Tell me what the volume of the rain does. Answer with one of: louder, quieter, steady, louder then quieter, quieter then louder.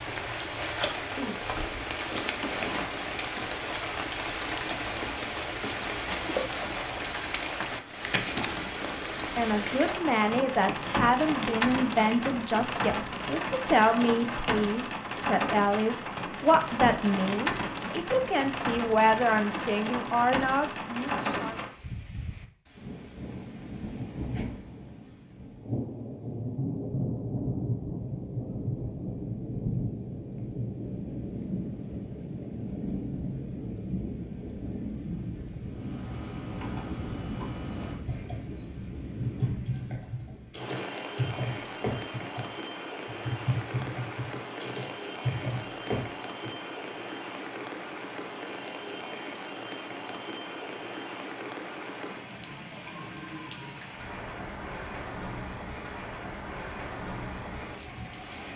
quieter.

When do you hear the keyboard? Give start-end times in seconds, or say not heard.
35.7-46.5.